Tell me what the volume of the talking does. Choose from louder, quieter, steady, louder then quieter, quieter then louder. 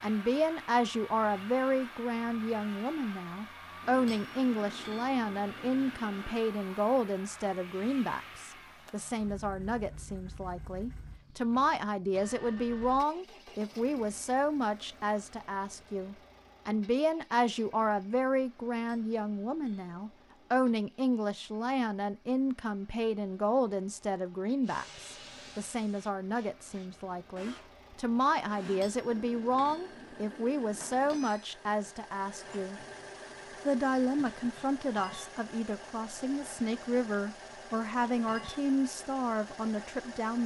steady.